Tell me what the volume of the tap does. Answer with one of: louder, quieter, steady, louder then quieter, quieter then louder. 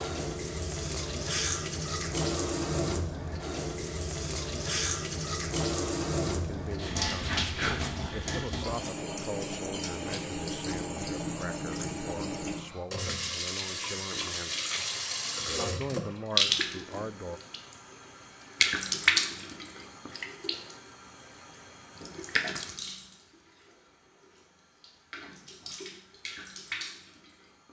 quieter.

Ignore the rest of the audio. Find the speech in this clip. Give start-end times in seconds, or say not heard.
6.4-7.4, 8.1-14.6, 15.8-17.4.